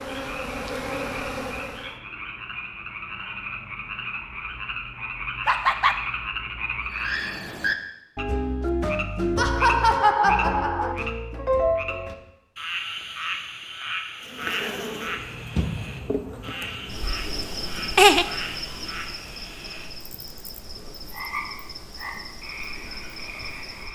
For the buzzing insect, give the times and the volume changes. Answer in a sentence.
The buzzing insect can be heard briefly from 0.0 to 1.9 s; and from 14.2 to 23.9 s, getting quieter.